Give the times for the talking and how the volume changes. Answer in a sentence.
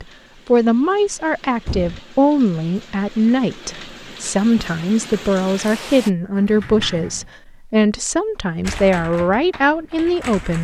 You can hear the talking from 0.0 to 10.5 s, at a steady volume.